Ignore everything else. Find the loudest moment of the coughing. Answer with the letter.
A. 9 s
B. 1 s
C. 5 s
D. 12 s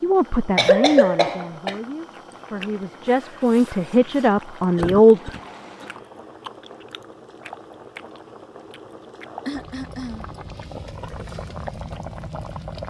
B.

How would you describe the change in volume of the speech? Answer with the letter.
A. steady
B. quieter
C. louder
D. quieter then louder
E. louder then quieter
D.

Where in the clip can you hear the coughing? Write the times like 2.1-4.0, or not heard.
0.6-1.8, 4.8-5.8, 9.4-10.3.